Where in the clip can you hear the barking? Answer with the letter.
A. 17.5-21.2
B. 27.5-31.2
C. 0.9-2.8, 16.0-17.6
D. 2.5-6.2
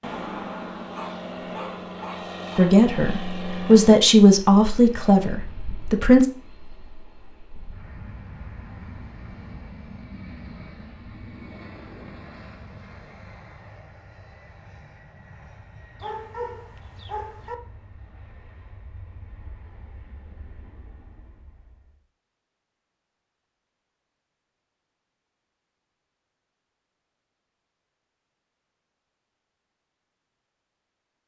C.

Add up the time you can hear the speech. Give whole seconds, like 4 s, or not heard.
4 s.